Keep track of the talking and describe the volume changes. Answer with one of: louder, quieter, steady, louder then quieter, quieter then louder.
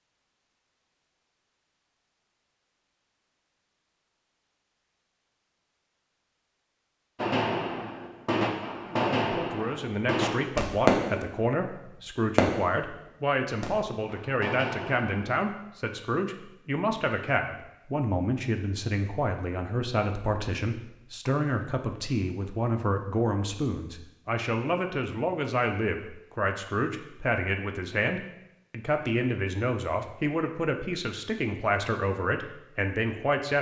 steady.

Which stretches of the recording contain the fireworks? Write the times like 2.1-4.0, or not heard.
7.2-15.4.